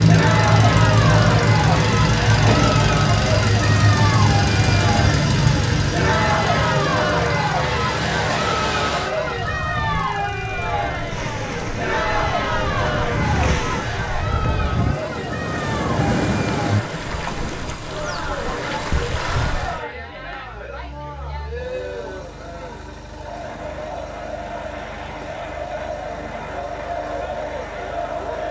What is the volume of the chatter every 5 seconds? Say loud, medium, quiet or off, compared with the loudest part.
loud, loud, loud, medium, medium, medium.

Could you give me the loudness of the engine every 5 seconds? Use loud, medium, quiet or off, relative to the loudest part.
loud, medium, quiet, quiet, quiet, quiet.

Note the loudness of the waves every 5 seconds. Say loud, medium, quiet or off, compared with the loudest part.
loud, loud, loud, loud, off, off.